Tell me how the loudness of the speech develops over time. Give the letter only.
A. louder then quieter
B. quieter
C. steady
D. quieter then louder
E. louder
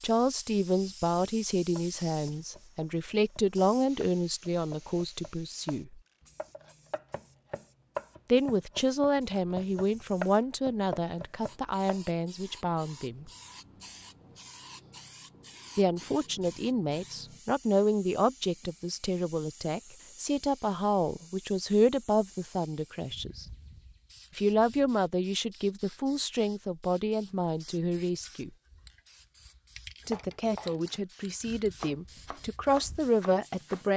C.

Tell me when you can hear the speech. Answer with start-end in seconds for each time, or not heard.
0.0-6.0, 8.3-13.3, 15.8-23.4, 24.4-28.5, 30.1-33.9.